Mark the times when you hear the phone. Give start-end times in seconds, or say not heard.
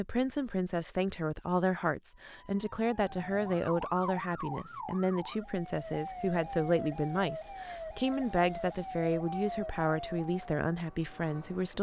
not heard.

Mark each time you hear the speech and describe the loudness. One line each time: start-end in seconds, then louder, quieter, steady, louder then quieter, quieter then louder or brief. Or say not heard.
0.0-11.7 steady.